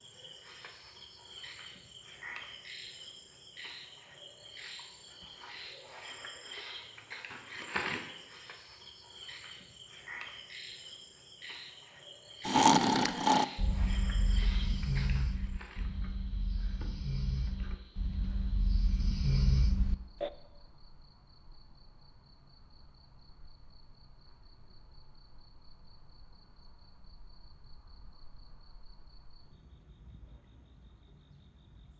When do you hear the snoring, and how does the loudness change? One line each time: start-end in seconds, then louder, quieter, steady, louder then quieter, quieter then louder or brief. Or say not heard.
12.4-20.3 quieter then louder.